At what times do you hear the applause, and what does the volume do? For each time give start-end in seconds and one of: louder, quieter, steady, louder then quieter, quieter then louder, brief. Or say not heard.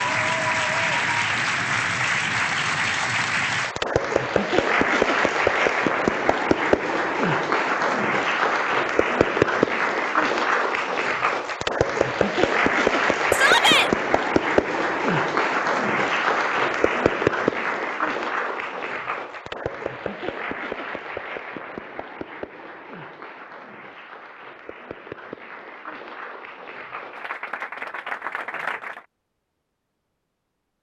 0.0-29.1 quieter.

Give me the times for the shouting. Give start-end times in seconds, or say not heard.
13.3-13.9.